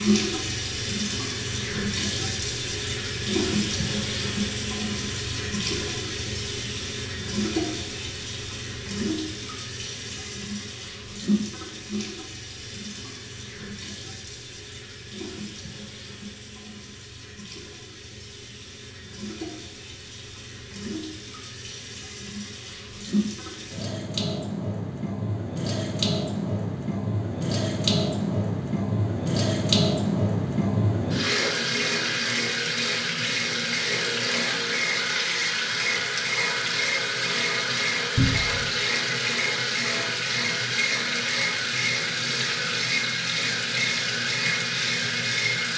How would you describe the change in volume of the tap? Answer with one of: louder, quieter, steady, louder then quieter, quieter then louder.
quieter then louder.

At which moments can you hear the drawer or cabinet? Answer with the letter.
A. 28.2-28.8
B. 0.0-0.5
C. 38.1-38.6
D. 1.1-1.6
C.